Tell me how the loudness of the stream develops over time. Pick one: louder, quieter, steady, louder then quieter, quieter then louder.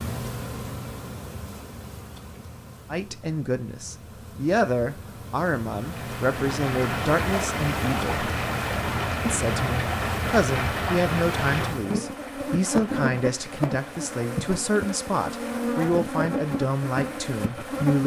quieter.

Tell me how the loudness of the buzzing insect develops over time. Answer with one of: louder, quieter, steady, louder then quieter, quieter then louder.
louder.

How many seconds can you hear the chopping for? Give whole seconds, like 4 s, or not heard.
not heard.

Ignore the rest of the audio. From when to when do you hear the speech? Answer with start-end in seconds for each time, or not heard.
2.9-8.3, 9.2-18.0.